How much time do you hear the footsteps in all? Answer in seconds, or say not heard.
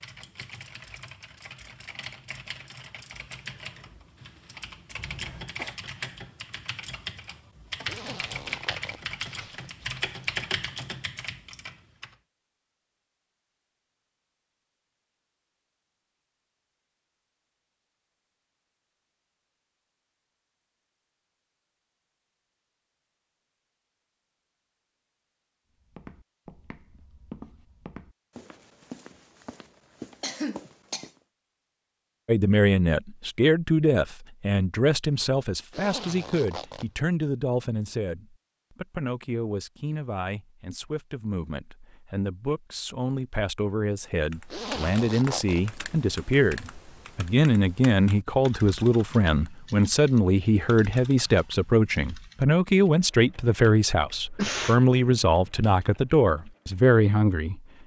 5 s.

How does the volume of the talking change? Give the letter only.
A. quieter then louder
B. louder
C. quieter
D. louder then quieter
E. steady
A.